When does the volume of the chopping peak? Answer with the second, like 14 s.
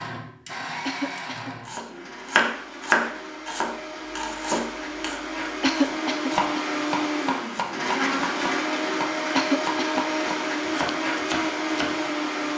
3 s.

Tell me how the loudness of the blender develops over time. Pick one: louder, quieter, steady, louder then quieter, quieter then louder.
louder.